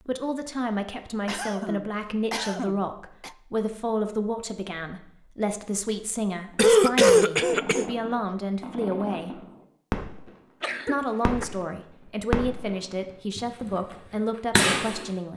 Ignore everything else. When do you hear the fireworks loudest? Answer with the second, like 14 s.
15 s.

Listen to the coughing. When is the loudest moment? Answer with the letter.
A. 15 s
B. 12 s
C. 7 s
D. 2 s
C.